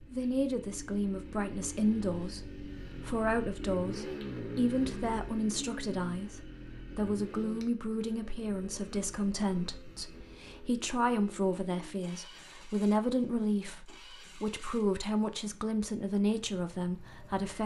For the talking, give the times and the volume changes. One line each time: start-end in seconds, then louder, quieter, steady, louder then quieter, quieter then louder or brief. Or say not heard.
0.0-17.6 steady.